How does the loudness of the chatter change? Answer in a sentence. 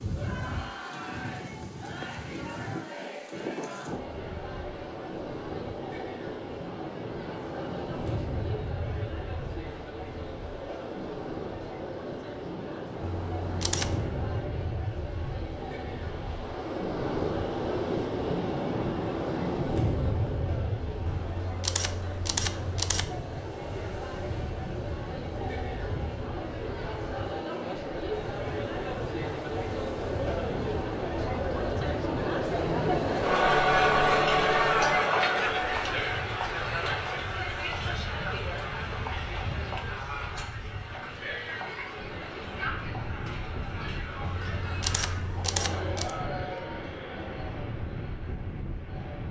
The volume of the chatter goes up, then down.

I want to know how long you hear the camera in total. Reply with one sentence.
You can hear the camera for 5 seconds altogether.